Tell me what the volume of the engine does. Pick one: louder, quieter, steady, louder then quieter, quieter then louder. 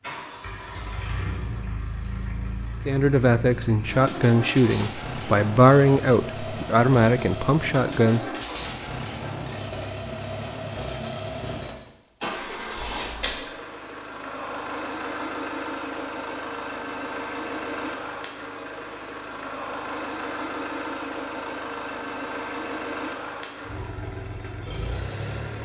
steady.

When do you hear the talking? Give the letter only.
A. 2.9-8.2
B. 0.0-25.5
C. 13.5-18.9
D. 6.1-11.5
A.